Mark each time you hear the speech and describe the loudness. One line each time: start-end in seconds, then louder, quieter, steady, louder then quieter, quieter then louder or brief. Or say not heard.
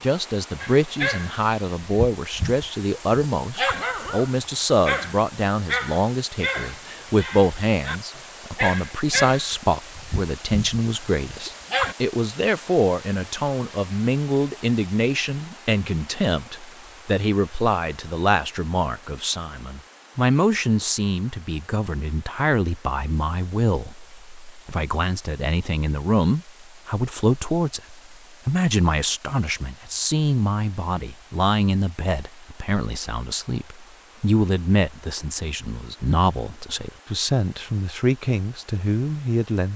0.0-39.7 steady.